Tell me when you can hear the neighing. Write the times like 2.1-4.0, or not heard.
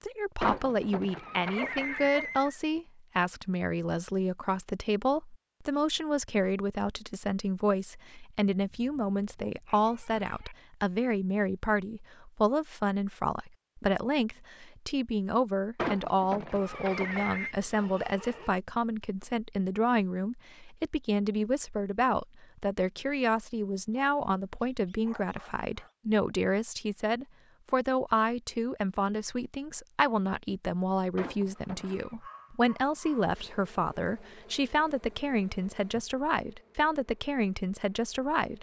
0.4-2.6, 15.8-17.6, 31.1-32.1.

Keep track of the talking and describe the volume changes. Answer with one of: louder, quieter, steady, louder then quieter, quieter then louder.
steady.